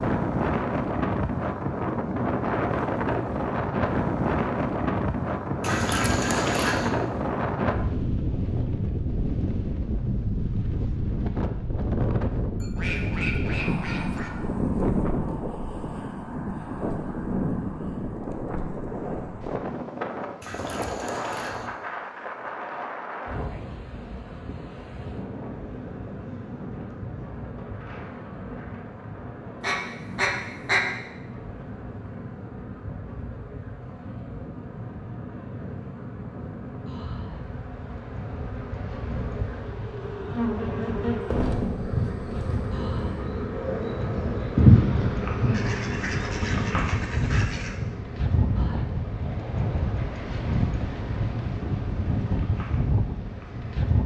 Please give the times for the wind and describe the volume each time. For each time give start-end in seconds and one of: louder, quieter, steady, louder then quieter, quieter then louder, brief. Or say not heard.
0.0-54.0 quieter then louder.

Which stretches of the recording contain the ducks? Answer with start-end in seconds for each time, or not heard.
5.6-6.9, 12.6-14.3, 20.4-21.7, 29.6-30.9, 41.2-42.9, 45.5-47.8.